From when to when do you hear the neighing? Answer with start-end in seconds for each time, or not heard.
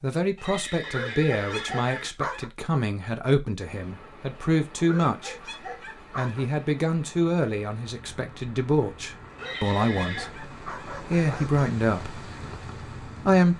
0.3-2.1, 9.3-10.3.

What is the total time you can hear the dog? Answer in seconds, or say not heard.
6 s.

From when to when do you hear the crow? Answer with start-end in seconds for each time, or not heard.
not heard.